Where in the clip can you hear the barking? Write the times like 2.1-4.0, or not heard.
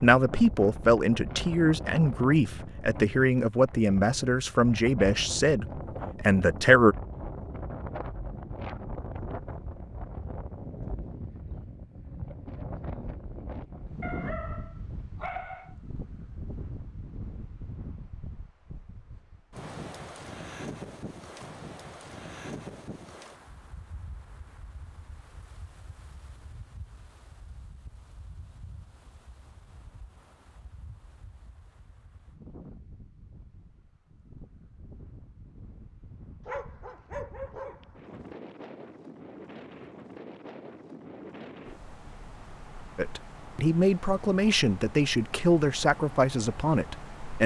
14.0-15.8, 36.5-38.1.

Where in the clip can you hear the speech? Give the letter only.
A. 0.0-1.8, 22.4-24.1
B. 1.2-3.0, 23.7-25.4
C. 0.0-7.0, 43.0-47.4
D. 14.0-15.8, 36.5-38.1
C.